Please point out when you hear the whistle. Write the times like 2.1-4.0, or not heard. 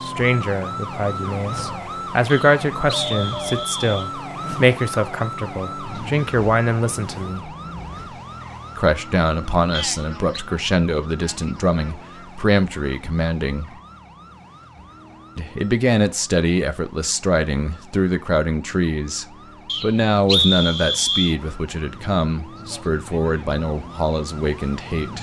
2.2-4.1, 9.7-10.4, 19.6-21.4.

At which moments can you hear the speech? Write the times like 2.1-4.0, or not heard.
0.0-7.5, 8.8-13.8, 15.3-25.1.